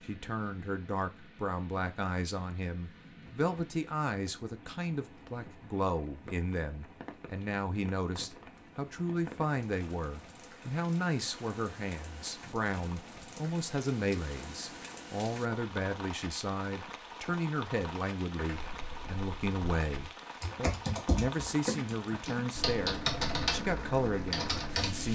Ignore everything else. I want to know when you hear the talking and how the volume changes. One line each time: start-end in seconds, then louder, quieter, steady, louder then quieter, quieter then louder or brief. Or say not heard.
0.0-25.0 steady.